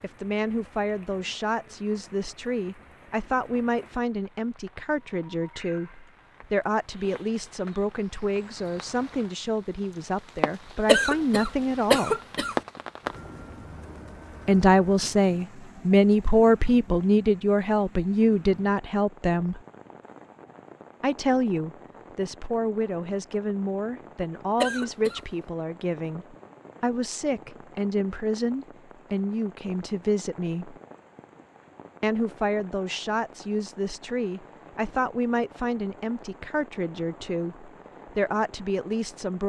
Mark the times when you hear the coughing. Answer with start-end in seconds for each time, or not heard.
10.8-12.6, 24.6-25.2.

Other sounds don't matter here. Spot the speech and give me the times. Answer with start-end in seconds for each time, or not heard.
0.0-12.2, 14.4-19.6, 21.0-30.8, 32.0-39.4.